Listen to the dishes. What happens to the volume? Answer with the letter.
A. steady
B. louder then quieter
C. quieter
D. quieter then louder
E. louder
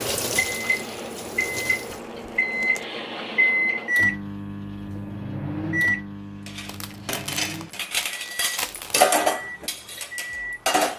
B.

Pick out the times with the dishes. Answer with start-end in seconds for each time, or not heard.
6.5-10.9.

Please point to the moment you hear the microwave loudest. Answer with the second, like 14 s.
4 s.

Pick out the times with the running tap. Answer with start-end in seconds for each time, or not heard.
0.0-2.0.